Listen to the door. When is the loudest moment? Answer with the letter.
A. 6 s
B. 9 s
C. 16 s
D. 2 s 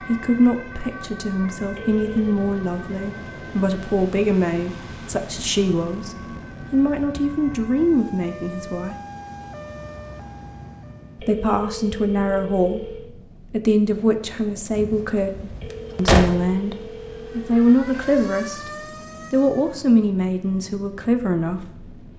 C.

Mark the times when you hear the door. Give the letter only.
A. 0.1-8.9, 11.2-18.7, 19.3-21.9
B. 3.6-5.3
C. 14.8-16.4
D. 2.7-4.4
C.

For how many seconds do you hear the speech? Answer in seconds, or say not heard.
19 s.